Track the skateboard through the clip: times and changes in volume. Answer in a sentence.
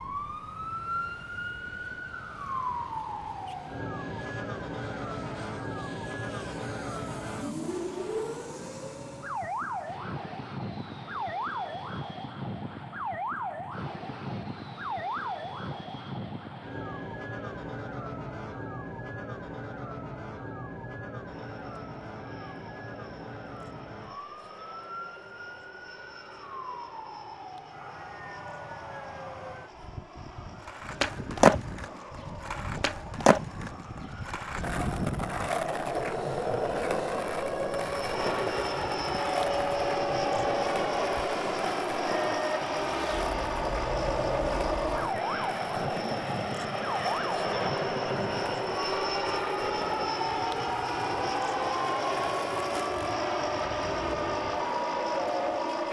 You can hear the skateboard from 30.6 to 55.8 s, getting quieter.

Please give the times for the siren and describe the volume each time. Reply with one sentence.
You can hear the siren from 0.0 to 55.8 s, getting quieter then louder.